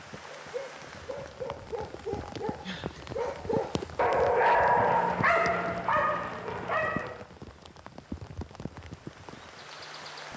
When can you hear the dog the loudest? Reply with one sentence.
The volume of the dog peaks at 5 seconds.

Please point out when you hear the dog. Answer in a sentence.
You can hear the dog from 0.2 to 7.3 s.